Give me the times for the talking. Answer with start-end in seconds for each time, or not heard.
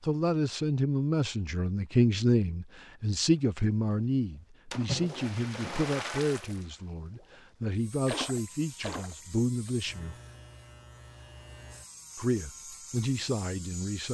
0.0-10.2, 12.2-14.0.